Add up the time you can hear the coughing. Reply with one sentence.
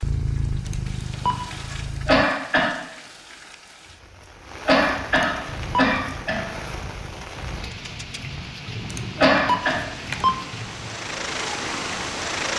You can hear the coughing for 3 seconds altogether.